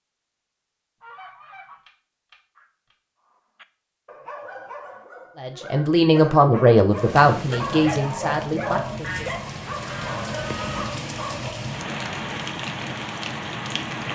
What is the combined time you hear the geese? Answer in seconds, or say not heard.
4 s.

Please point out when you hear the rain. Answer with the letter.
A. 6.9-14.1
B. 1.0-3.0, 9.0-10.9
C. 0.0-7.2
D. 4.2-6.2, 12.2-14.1
A.